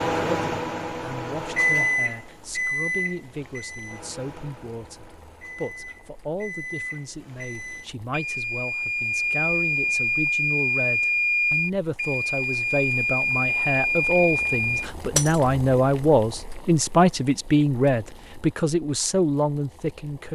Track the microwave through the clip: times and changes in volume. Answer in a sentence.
You can hear the microwave from 0.0 to 14.8 s, getting quieter then louder.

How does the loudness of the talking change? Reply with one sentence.
The loudness of the talking goes up.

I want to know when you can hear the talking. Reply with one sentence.
The talking can be heard from 0.1 to 20.3 s.